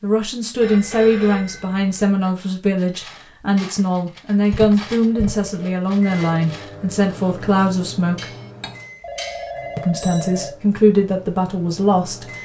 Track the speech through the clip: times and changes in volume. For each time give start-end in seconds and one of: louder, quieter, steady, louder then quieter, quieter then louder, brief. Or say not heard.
0.0-8.3 steady
9.8-12.2 brief.